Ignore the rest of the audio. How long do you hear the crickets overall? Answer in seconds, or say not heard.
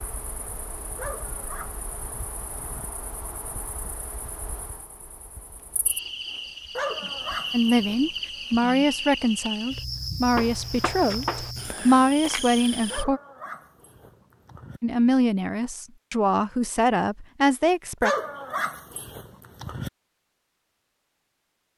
13 s.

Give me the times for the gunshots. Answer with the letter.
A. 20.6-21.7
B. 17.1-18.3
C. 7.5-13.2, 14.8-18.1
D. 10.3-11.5
D.